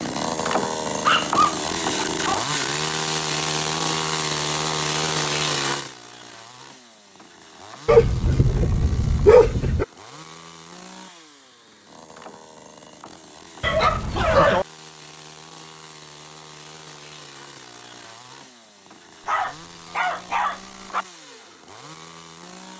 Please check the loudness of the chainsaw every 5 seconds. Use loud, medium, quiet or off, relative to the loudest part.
loud, medium, quiet, quiet, quiet.